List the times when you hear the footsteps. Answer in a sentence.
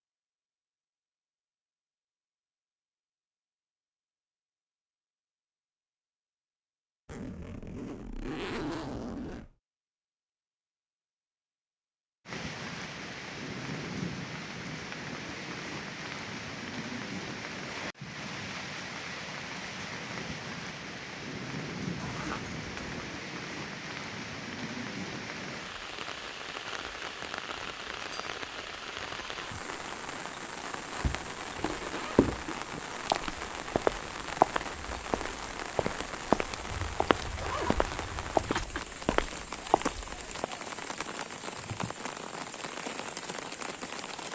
You can hear the footsteps from 31.0 to 40.5 s.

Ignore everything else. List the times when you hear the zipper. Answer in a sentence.
The zipper can be heard from 7.0 to 9.5 s, from 22.0 to 23.1 s and from 36.6 to 38.6 s.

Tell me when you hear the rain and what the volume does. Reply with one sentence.
You can hear the rain from 12.2 to 44.3 s, at a steady volume.